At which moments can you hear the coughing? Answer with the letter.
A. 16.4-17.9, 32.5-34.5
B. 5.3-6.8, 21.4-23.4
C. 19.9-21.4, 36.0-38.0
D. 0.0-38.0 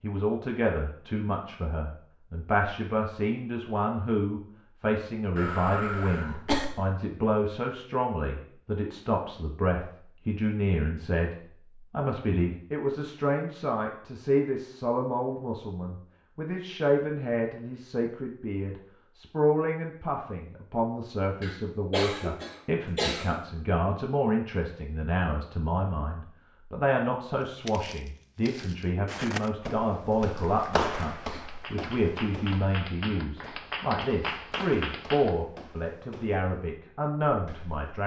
B.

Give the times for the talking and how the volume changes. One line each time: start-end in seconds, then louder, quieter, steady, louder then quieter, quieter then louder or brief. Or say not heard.
0.0-38.0 steady.